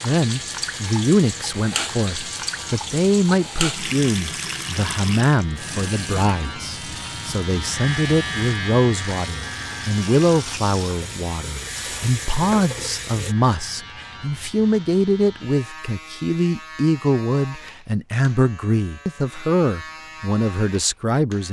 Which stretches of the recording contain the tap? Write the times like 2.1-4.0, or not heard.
0.0-13.3.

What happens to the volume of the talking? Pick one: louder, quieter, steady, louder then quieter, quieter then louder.
steady.